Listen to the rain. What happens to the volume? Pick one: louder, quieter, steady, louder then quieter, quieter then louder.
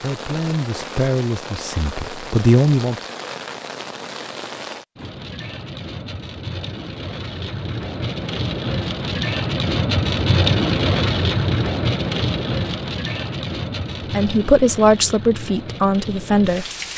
louder then quieter.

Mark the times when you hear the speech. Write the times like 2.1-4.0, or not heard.
0.0-3.0, 14.1-16.6.